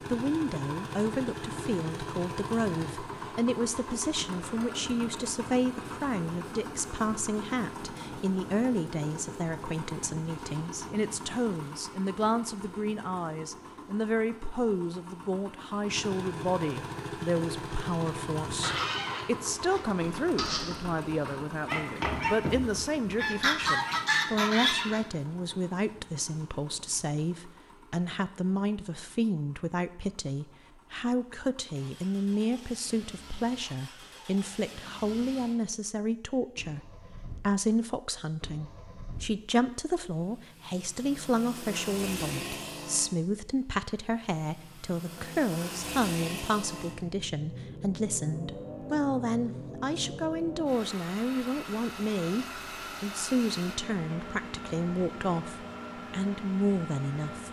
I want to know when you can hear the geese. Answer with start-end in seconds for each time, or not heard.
18.4-25.1.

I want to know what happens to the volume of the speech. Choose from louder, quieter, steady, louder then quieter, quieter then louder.
steady.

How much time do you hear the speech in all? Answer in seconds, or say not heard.
57 s.